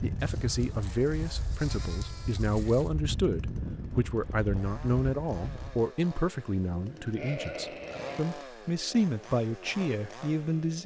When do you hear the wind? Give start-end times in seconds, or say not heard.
0.0-5.9.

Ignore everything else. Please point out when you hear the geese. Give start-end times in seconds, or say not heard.
not heard.